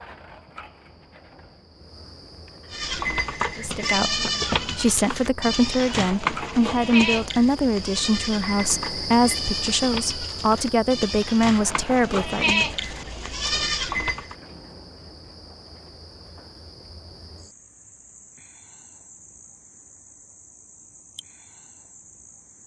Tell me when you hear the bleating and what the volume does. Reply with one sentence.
The bleating can be heard from 2.7 to 14.3 s, getting quieter then louder.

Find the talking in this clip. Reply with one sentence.
The talking can be heard from 3.5 to 12.7 s.